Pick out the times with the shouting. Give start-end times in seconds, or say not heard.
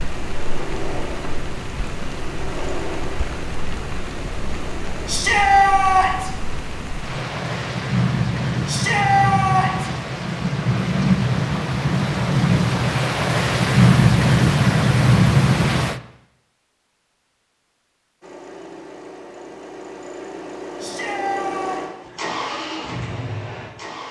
5.0-6.3, 8.7-9.9, 20.8-21.8.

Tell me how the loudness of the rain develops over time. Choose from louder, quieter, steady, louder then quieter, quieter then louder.
louder.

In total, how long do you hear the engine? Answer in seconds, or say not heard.
11 s.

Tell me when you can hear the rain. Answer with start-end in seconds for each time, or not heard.
0.0-16.0.